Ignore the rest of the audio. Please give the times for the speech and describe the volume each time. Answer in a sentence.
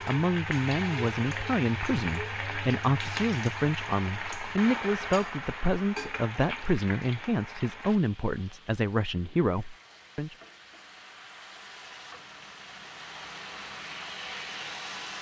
You can hear the speech from 0.1 to 10.3 s, at a steady volume.